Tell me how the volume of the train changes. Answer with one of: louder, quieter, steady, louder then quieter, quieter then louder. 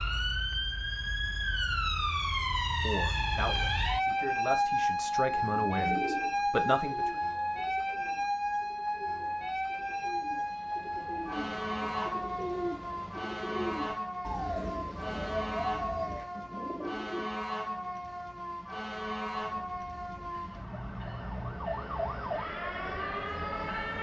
louder.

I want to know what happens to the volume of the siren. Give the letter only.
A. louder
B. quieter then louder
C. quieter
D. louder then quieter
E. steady
C.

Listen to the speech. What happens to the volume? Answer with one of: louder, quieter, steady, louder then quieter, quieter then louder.
louder.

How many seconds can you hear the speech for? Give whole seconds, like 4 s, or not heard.
4 s.